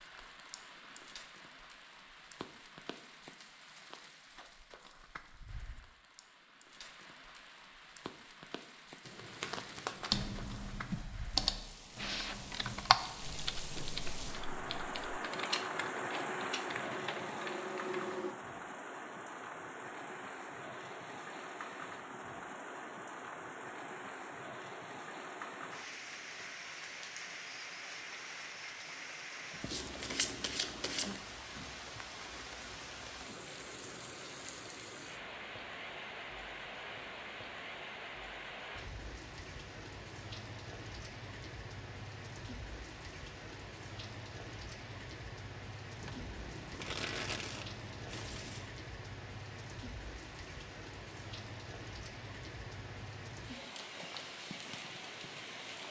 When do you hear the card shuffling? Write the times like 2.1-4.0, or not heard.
9.1-10.3, 29.6-31.1, 46.0-48.7.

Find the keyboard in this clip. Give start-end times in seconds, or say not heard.
10.1-18.4.